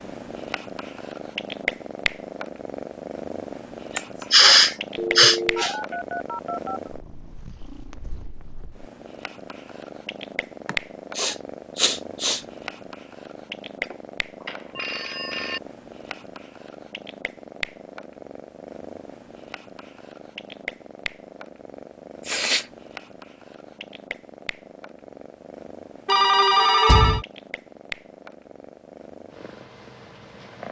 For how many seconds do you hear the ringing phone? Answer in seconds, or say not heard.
5 s.